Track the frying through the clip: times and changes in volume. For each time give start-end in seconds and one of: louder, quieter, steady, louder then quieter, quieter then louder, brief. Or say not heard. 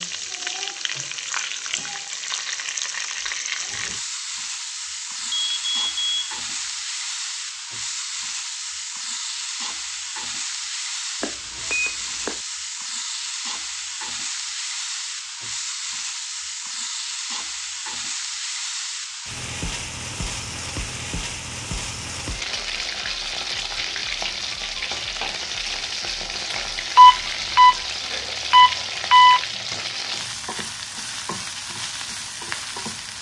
0.0-33.1 steady.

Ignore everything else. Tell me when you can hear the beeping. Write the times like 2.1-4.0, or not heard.
5.2-6.2, 11.2-12.4, 26.9-29.4.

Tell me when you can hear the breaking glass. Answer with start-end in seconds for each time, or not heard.
not heard.